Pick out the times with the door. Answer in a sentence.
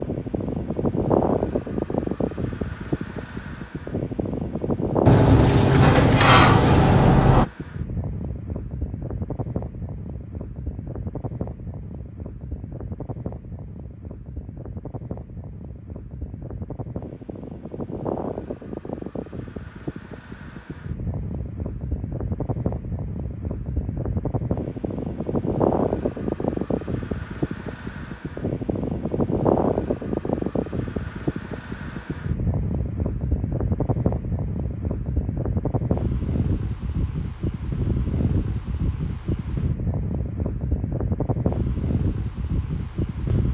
The door can be heard from 5.0 to 7.5 s.